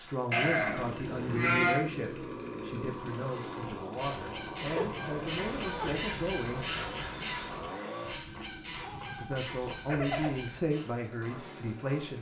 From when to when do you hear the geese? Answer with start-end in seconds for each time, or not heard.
3.3-10.9.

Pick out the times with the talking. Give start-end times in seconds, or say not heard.
0.0-6.8, 9.2-12.1.